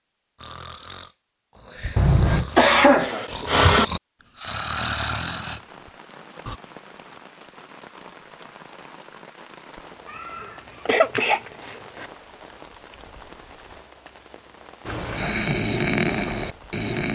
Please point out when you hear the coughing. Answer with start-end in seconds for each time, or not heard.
1.9-3.9, 10.1-12.1.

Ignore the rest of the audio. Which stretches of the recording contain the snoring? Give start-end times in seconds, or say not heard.
0.3-6.6, 14.8-17.1.